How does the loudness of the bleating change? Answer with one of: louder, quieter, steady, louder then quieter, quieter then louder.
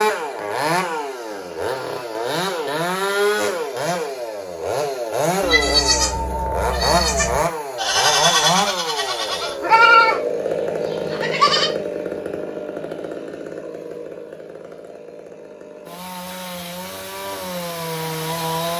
louder then quieter.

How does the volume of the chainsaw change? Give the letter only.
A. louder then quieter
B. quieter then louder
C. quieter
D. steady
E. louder
C.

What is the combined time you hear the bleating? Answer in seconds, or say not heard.
6 s.